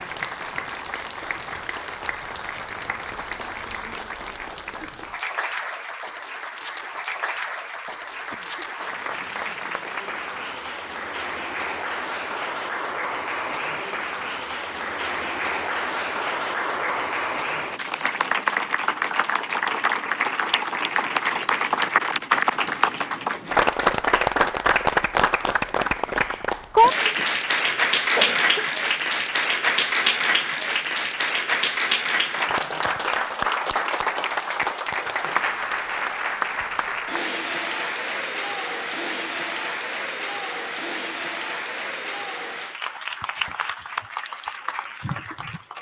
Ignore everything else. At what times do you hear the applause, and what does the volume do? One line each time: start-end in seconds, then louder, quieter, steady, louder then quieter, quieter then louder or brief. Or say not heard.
0.0-45.7 louder then quieter.